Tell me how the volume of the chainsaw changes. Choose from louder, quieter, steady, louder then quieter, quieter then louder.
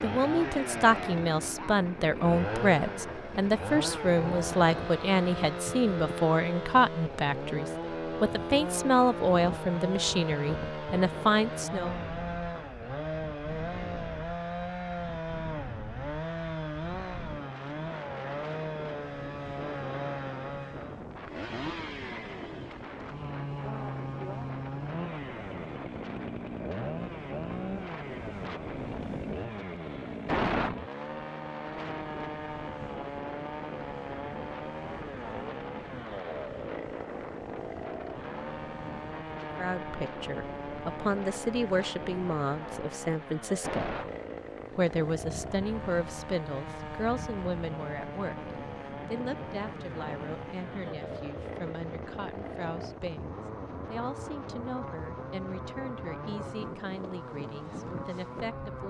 quieter.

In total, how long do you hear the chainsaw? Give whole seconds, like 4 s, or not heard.
59 s.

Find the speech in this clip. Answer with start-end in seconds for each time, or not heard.
0.0-11.9, 39.5-44.0, 44.8-58.8.